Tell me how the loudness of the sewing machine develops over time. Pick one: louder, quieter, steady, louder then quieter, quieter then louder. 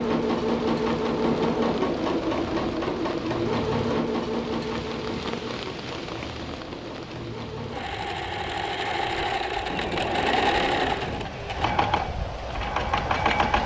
quieter then louder.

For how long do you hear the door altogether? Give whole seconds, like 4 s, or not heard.
5 s.